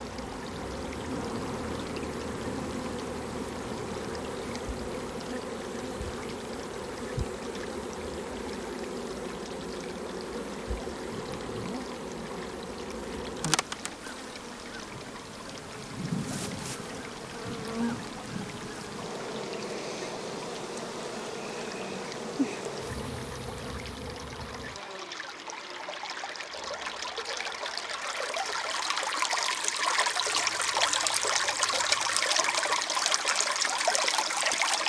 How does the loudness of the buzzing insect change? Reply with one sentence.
The loudness of the buzzing insect goes down.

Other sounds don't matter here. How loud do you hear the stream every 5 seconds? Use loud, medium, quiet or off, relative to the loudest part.
quiet, quiet, quiet, quiet, quiet, medium, loud.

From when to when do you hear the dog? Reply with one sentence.
You can't hear the dog here.